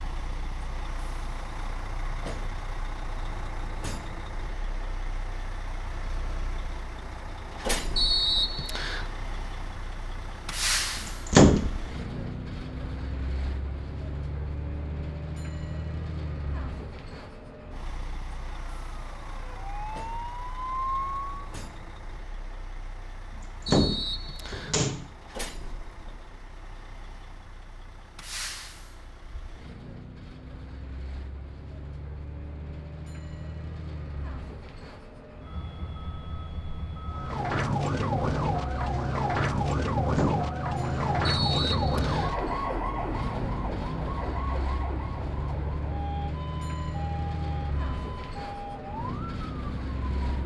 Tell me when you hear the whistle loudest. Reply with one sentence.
The volume of the whistle peaks at 8 seconds.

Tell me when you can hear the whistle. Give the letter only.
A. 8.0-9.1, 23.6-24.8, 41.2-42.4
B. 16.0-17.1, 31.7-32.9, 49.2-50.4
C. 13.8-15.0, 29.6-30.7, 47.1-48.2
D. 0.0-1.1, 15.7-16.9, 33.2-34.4
A.